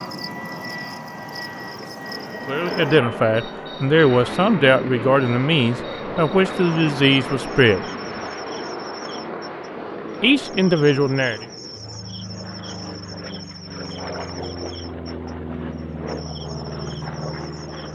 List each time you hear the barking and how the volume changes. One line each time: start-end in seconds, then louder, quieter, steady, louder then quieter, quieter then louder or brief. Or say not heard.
not heard.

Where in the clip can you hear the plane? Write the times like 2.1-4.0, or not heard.
0.0-17.8.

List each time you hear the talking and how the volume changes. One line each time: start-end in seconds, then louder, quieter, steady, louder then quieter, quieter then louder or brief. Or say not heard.
2.5-7.8 steady
10.2-11.4 brief.